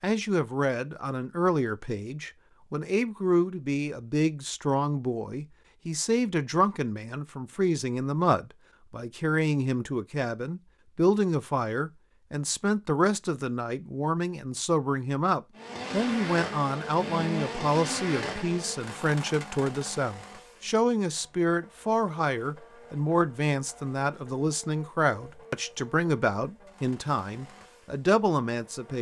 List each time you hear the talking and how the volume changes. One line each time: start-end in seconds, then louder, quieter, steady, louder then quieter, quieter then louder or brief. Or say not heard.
0.0-28.9 steady.